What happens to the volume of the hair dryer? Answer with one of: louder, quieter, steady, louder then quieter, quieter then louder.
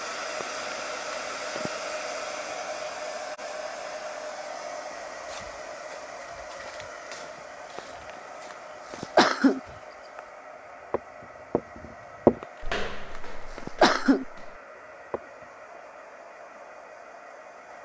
quieter.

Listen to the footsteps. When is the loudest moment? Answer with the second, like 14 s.
12 s.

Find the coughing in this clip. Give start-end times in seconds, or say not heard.
0.4-1.8, 8.9-9.6, 13.6-14.2.